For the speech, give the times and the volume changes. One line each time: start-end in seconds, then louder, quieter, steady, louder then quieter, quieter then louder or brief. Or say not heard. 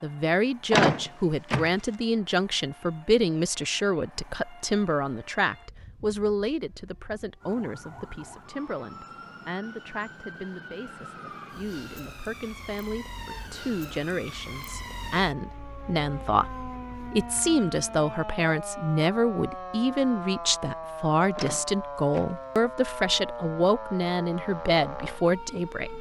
0.0-25.9 quieter then louder.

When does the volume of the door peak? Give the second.
1 s.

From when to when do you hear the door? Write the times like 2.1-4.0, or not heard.
0.7-1.7, 21.4-22.4.